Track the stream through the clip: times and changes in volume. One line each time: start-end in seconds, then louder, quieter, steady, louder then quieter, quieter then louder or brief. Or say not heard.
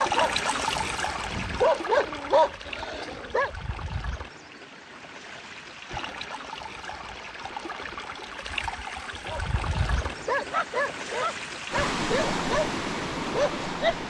0.0-14.0 quieter then louder.